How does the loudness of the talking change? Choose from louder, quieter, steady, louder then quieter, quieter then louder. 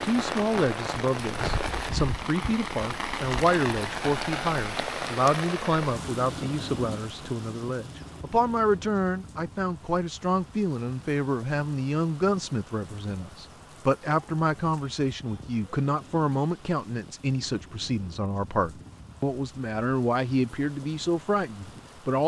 steady.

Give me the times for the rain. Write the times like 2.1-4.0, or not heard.
0.0-22.2.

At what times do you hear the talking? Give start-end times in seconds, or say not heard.
0.0-22.2.